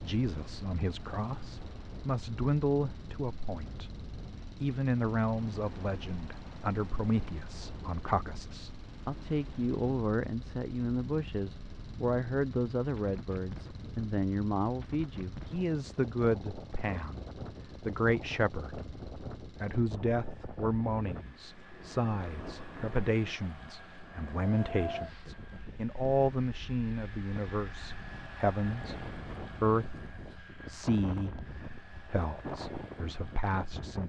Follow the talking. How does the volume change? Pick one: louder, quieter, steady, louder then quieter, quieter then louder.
steady.